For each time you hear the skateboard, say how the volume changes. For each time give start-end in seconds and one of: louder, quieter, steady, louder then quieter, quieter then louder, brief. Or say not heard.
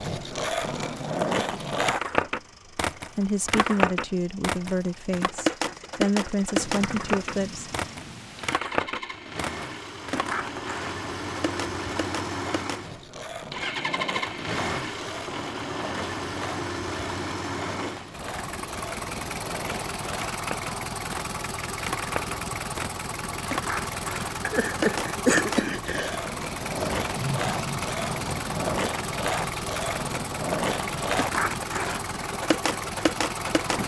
0.0-33.8 quieter then louder.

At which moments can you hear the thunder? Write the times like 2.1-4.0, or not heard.
6.5-8.6, 26.9-28.6.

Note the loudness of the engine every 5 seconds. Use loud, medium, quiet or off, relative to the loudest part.
quiet, medium, loud, loud, loud, loud, loud.